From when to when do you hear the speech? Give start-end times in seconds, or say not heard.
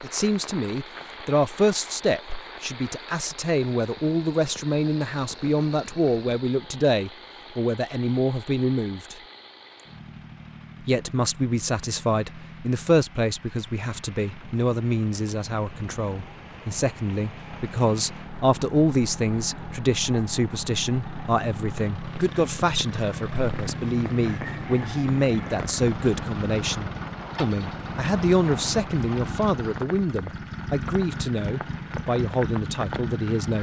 0.0-9.2, 10.8-33.5.